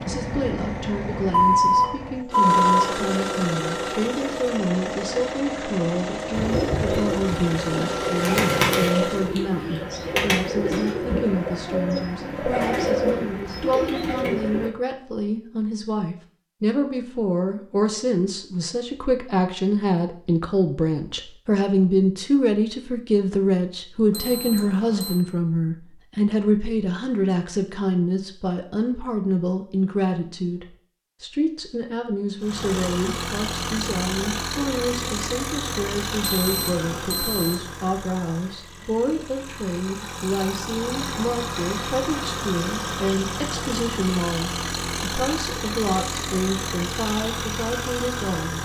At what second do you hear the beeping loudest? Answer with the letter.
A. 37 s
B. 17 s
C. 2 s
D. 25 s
C.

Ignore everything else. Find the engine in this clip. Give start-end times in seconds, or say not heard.
0.0-9.3, 32.4-48.6.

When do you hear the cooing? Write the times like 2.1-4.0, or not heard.
6.3-14.7.